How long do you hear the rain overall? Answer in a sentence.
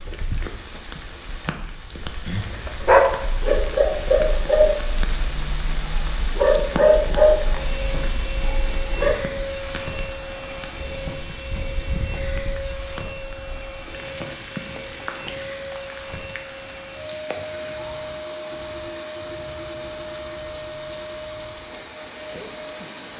You can hear the rain for 23 seconds altogether.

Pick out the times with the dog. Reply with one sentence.
You can hear the dog from 2.2 to 9.2 s.